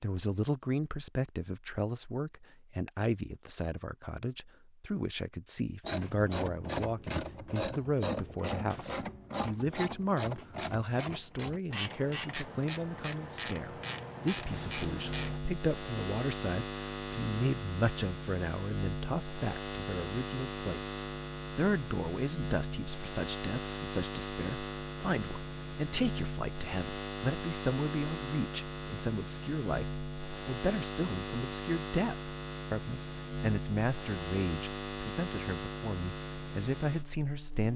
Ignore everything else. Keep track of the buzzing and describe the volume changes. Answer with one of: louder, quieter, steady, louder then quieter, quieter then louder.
steady.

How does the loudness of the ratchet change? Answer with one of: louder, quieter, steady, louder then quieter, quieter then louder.
steady.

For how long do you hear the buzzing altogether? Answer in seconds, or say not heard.
23 s.